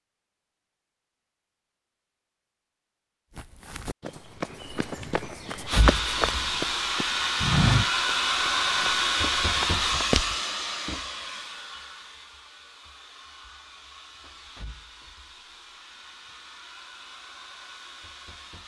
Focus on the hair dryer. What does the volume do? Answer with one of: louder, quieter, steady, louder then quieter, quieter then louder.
quieter.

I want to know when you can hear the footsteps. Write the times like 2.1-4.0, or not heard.
3.4-10.3.